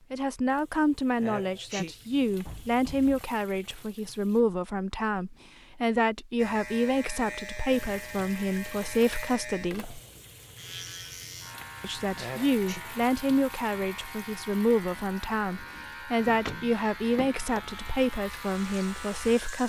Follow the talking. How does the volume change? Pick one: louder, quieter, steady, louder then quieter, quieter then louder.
steady.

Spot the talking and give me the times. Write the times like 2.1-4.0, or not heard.
0.1-10.0, 11.8-19.6.